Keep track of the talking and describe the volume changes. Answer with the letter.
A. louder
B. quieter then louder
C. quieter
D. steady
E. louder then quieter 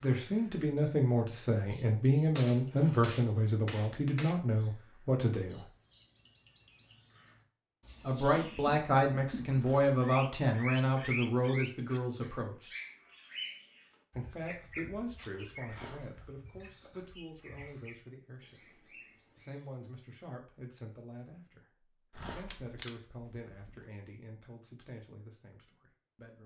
C.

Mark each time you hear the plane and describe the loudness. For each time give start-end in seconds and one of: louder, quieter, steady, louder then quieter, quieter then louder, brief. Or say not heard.
not heard.